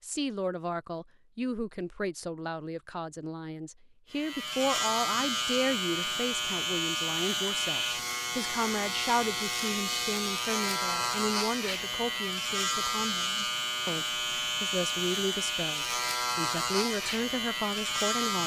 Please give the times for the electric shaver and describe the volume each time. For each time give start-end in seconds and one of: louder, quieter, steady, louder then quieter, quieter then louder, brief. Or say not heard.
4.1-18.4 steady.